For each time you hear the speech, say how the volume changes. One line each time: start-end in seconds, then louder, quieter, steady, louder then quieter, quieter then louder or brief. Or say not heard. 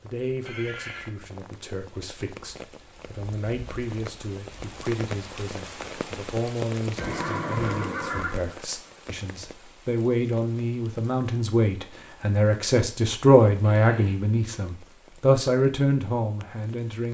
0.0-17.0 louder.